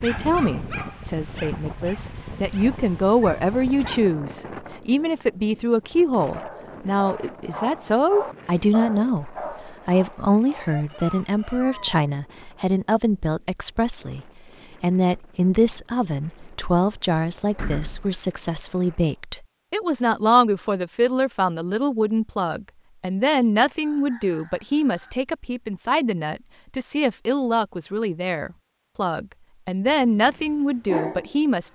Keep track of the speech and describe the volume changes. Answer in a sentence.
The loudness of the speech stays about the same.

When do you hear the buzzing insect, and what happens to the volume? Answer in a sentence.
You can't hear the buzzing insect here.